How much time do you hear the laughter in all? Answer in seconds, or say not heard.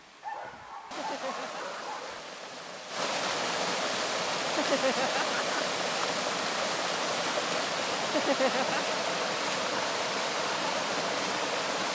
3 s.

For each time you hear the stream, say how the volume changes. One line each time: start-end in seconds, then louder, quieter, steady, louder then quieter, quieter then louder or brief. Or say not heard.
0.0-11.9 louder.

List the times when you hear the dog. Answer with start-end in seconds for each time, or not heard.
0.2-2.2.